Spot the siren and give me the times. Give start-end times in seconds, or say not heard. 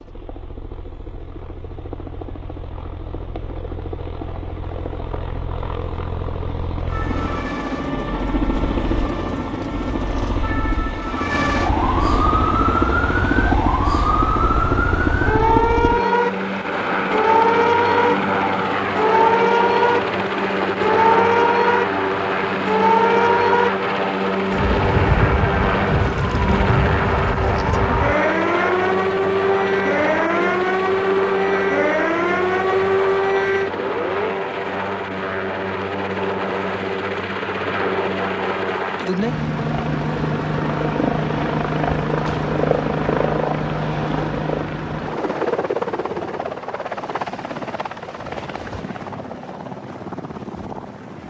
6.8-34.4.